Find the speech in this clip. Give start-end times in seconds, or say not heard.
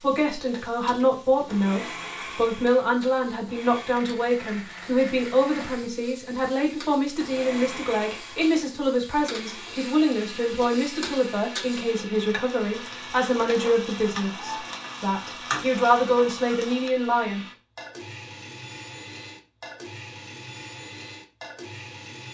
0.0-17.4.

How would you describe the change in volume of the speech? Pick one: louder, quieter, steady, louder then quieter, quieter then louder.
steady.